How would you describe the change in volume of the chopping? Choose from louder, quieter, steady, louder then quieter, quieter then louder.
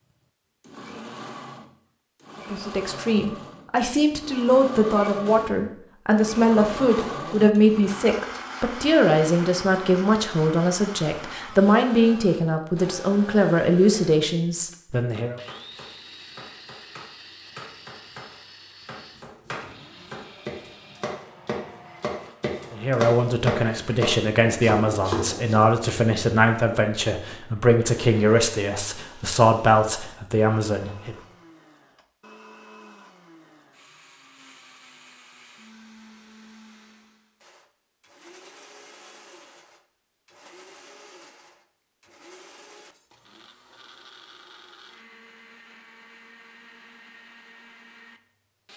louder.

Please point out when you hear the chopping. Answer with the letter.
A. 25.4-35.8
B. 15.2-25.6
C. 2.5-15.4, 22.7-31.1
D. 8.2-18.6
B.